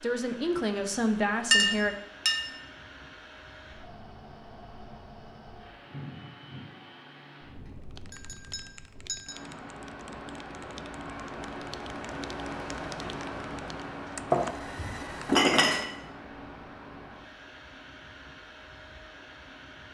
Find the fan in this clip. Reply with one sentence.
The fan can be heard from 0.0 to 19.8 s.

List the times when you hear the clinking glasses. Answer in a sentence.
The clinking glasses can be heard from 1.5 to 2.5 s, from 8.1 to 9.4 s and from 14.3 to 15.8 s.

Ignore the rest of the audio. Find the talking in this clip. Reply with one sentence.
You can hear the talking from 0.0 to 1.9 s.